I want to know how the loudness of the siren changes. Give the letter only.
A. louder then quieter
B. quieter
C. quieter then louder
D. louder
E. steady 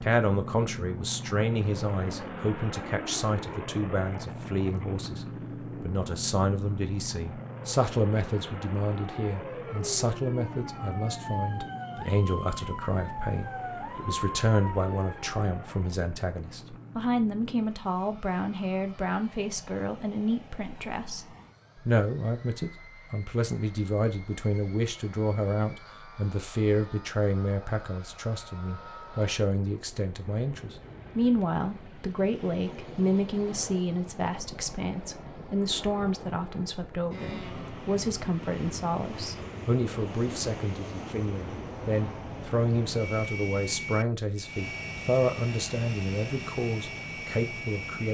E.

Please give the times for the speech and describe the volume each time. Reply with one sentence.
You can hear the speech from 0.0 to 21.2 s, at a steady volume; and from 21.9 to 48.0 s, at a steady volume.